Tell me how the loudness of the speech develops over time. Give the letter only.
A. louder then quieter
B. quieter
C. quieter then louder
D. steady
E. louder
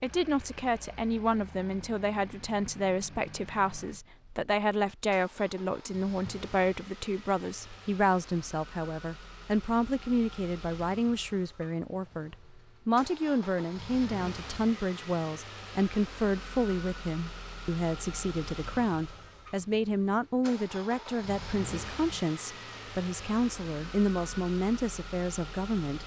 D.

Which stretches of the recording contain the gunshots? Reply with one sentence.
The gunshots can't be heard in this clip.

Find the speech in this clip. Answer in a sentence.
You can hear the speech from 0.0 to 26.0 s.